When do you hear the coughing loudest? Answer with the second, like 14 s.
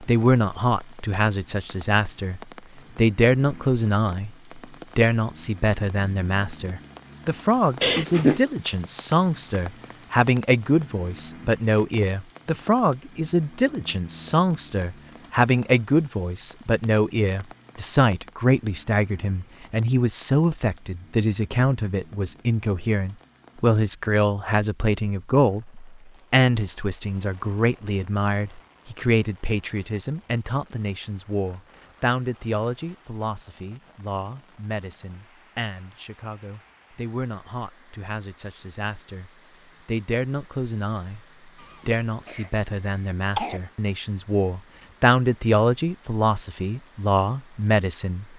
8 s.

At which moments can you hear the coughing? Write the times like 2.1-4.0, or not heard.
7.8-8.4, 41.6-43.6.